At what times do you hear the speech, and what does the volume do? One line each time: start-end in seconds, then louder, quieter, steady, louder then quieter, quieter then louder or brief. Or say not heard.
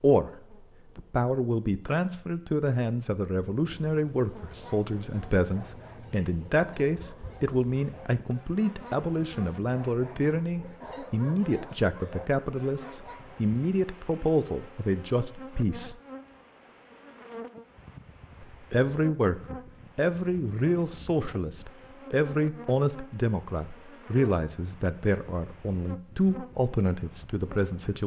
0.0-15.9 steady
18.6-28.0 steady.